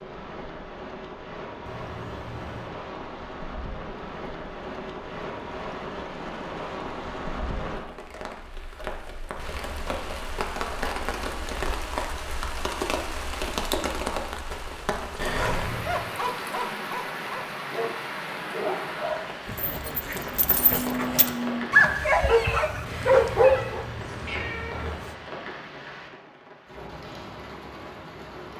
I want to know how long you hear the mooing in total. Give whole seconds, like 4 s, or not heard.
2 s.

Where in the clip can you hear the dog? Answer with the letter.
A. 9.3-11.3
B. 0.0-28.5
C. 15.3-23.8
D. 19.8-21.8
C.